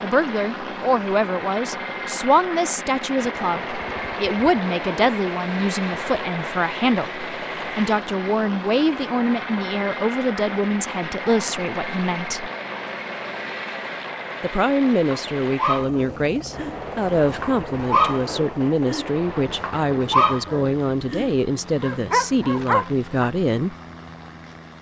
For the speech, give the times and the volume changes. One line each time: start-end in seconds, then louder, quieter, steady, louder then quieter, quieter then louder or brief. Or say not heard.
0.0-12.5 steady
14.4-23.8 steady.